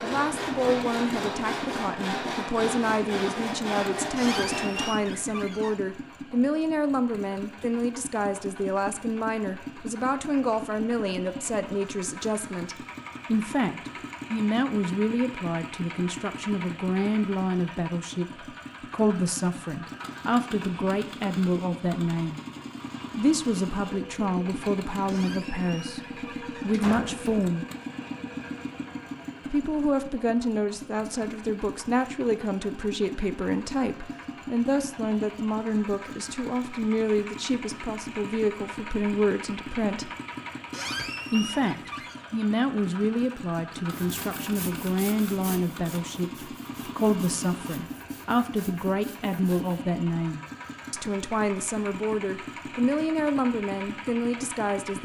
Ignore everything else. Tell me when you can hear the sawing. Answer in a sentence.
The sawing can be heard from 0.0 to 5.0 s and from 43.9 to 49.8 s.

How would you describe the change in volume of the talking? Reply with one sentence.
The loudness of the talking stays about the same.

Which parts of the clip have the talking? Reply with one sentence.
You can hear the talking from 0.0 to 22.4 s, from 23.1 to 27.6 s, from 29.5 to 40.1 s and from 41.3 to 55.0 s.